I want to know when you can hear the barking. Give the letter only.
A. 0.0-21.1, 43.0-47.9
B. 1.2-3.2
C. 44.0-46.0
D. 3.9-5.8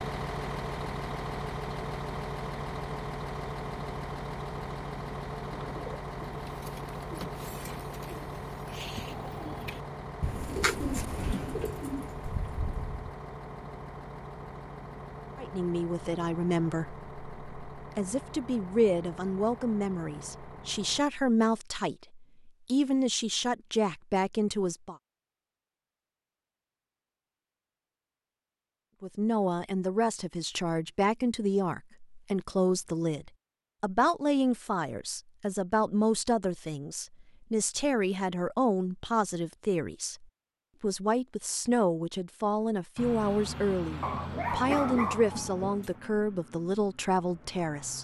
C.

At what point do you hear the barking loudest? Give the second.
45 s.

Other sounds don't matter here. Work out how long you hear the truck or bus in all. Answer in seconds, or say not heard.
26 s.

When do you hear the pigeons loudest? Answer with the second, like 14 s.
11 s.